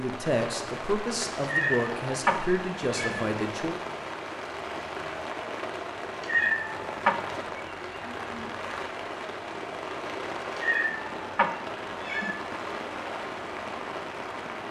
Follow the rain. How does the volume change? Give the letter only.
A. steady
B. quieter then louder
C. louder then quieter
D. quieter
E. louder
A.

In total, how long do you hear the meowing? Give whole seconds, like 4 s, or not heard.
5 s.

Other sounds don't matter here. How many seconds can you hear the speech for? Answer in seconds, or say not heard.
4 s.